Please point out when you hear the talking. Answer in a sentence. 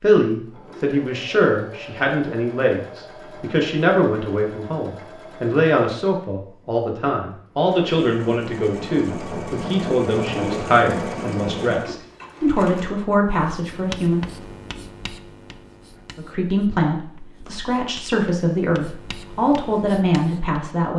The talking can be heard from 0.0 to 14.2 s and from 16.1 to 20.9 s.